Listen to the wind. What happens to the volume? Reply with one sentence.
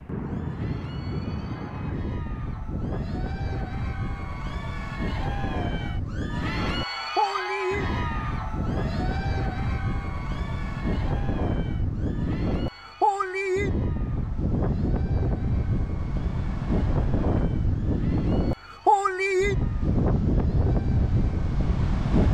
The loudness of the wind goes up.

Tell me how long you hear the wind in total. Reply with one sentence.
You can hear the wind for 22 seconds altogether.